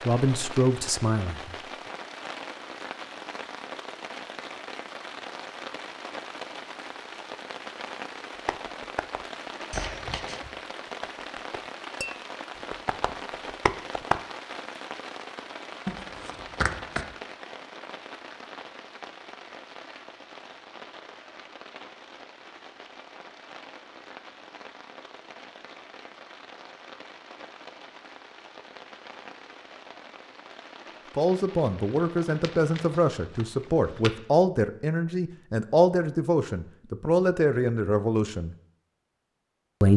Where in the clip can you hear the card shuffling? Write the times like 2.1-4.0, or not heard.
9.7-10.5, 15.8-17.1, 32.4-34.1.